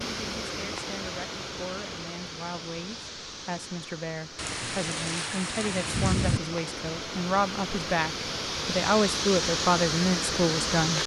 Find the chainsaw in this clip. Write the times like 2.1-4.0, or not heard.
not heard.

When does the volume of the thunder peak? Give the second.
6 s.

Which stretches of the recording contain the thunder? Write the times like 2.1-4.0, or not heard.
4.3-6.4.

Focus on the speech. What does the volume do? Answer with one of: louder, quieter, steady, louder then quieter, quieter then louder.
louder.